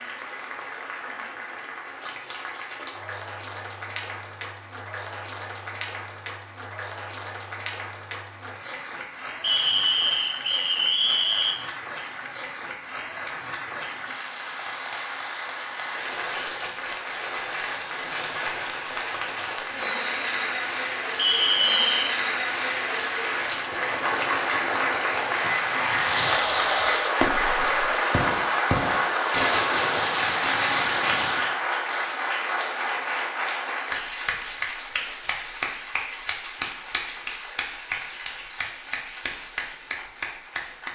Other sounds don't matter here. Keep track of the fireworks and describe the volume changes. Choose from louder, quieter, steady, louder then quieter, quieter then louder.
quieter then louder.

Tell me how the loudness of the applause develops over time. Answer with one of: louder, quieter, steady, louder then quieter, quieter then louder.
louder then quieter.